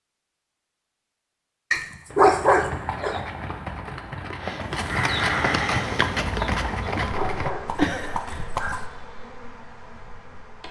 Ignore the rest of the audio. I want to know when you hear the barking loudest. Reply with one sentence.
The loudest moment of the barking is at 2 seconds.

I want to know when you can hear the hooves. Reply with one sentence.
You can hear the hooves from 2.0 to 8.8 s.